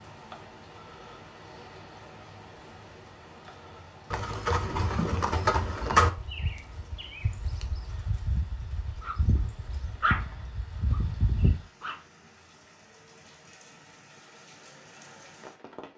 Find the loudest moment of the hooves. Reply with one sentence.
The volume of the hooves peaks at 6 seconds.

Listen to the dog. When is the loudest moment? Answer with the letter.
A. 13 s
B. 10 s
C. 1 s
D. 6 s
B.